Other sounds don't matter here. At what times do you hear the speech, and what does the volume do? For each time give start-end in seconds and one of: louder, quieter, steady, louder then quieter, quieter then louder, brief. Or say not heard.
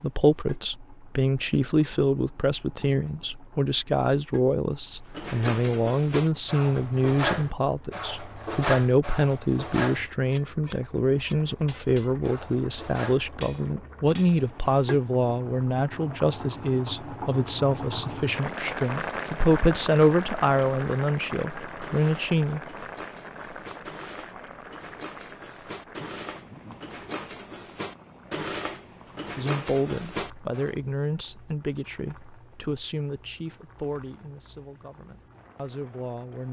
0.0-22.6 steady
29.4-36.4 quieter.